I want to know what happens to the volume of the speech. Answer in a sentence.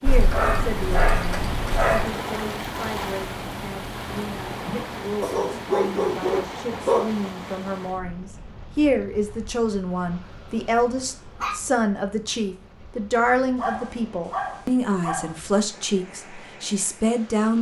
The loudness of the speech goes up.